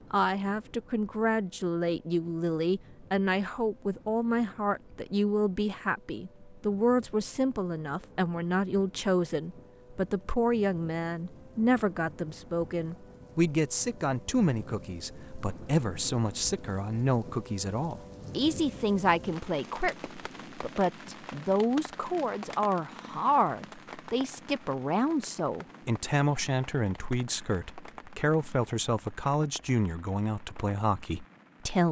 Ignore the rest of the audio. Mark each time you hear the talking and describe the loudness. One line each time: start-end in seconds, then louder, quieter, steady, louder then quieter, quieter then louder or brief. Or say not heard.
0.1-31.8 steady.